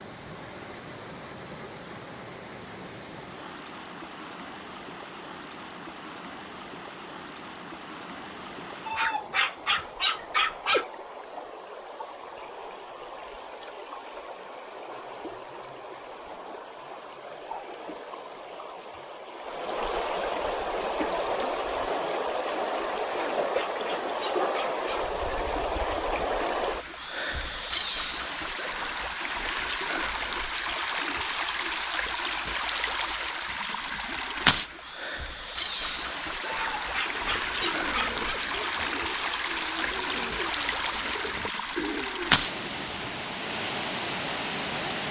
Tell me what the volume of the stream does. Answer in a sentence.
The loudness of the stream goes up.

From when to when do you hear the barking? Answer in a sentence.
The barking can be heard from 8.8 to 10.8 s, from 23.1 to 25.1 s and from 36.5 to 38.4 s.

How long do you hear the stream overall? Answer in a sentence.
You can hear the stream for 45 seconds altogether.